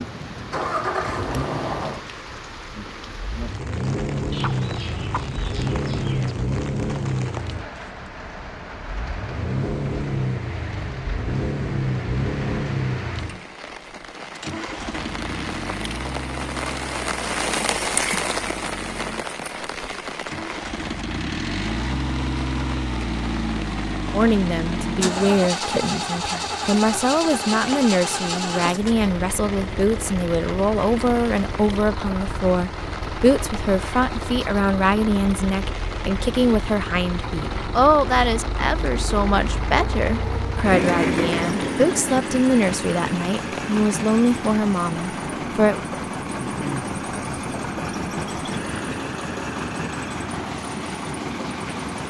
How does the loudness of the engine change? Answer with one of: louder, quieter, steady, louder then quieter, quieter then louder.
steady.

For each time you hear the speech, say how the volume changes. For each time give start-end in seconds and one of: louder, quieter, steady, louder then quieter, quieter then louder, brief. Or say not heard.
24.1-45.8 steady.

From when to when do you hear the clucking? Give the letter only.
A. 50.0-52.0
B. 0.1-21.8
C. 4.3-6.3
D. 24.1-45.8
C.